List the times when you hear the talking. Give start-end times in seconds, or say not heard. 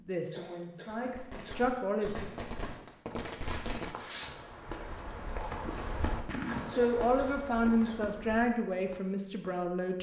0.0-2.1, 6.7-9.9.